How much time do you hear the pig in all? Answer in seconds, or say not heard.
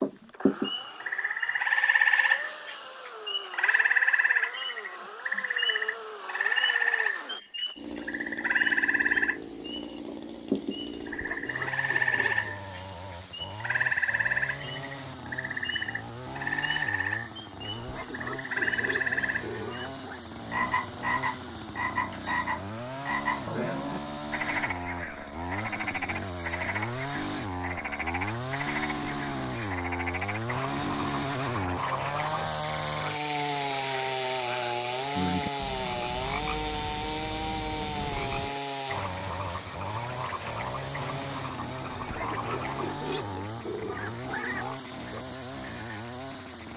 7 s.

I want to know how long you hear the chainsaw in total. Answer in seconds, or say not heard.
47 s.